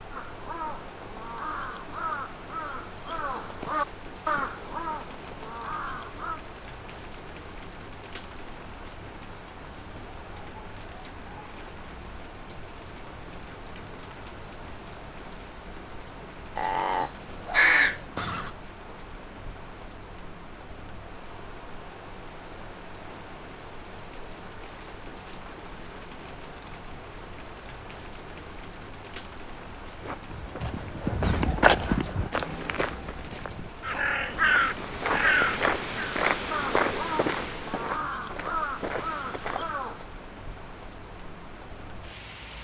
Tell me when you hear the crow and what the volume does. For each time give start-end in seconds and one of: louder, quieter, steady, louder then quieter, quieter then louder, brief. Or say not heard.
0.1-6.4 louder then quieter
16.6-18.5 brief
33.8-40.1 quieter.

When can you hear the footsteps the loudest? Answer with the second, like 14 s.
32 s.